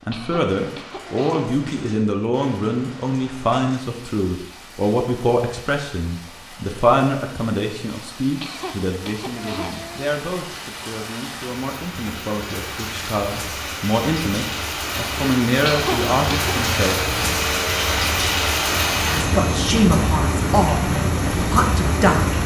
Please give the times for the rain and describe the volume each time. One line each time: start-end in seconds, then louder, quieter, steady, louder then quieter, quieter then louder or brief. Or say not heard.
0.0-22.4 louder.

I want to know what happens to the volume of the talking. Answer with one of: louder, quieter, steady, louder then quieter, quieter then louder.
quieter then louder.